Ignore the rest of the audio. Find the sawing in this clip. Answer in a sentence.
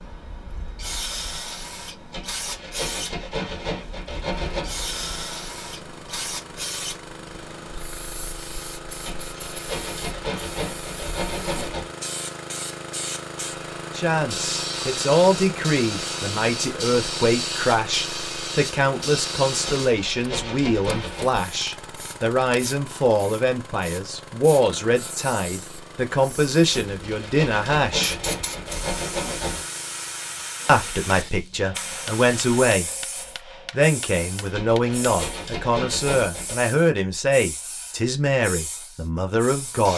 The sawing can be heard from 2.1 to 4.8 s, from 9.0 to 11.9 s, from 19.6 to 21.3 s, from 26.9 to 29.6 s and from 34.5 to 36.5 s.